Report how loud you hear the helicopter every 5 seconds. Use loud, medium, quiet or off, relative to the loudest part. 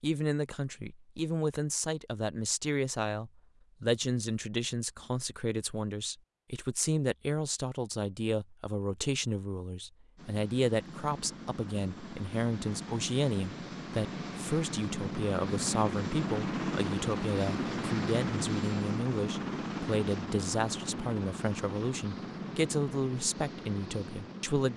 off, off, medium, loud, medium.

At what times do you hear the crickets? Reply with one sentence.
The crickets can't be heard in this clip.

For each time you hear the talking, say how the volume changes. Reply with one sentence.
You can hear the talking from 0.0 to 24.7 s, at a steady volume.